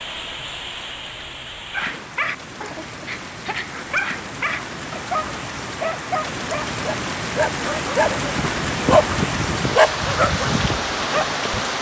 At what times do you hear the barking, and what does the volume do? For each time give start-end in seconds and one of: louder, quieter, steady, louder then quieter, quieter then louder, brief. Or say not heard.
1.7-11.6 louder.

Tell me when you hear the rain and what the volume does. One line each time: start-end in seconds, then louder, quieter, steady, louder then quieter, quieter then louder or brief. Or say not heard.
0.0-11.7 louder.